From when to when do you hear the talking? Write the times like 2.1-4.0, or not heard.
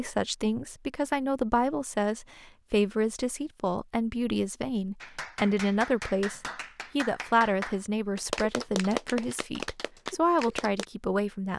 0.0-11.5.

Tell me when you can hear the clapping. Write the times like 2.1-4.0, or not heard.
5.0-10.8.